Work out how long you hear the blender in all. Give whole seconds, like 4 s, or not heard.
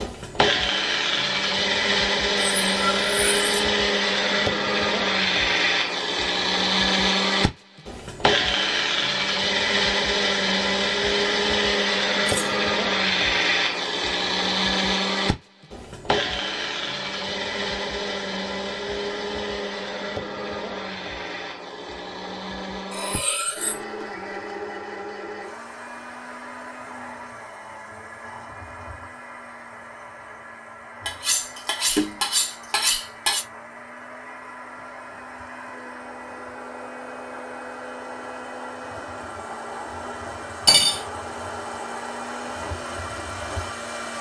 44 s.